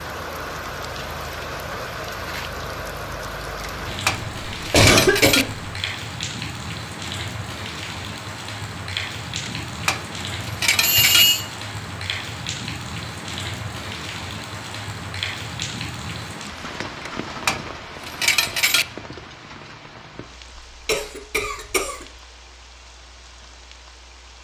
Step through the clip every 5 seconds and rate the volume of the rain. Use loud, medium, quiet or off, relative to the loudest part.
loud, loud, loud, loud, quiet.